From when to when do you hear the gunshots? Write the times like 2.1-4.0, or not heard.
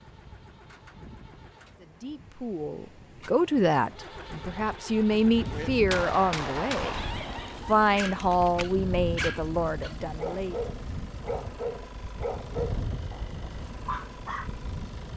5.5-8.8.